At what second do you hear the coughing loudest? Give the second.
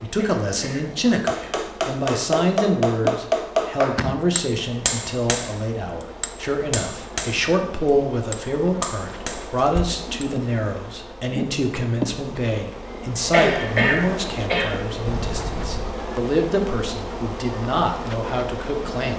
14 s.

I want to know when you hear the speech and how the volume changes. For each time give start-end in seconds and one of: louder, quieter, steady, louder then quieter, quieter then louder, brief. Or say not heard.
0.0-19.1 steady.